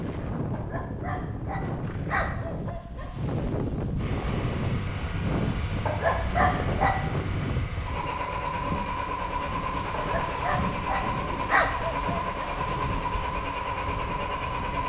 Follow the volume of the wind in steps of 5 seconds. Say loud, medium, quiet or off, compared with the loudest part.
loud, loud, medium.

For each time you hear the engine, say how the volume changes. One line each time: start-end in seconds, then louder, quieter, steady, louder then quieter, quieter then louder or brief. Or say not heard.
4.0-14.8 louder.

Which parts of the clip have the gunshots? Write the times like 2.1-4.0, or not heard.
not heard.